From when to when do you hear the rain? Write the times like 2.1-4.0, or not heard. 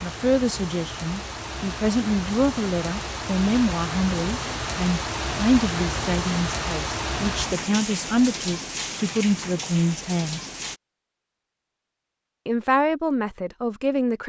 0.0-10.8.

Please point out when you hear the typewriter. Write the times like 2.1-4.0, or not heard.
not heard.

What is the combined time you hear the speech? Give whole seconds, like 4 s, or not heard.
12 s.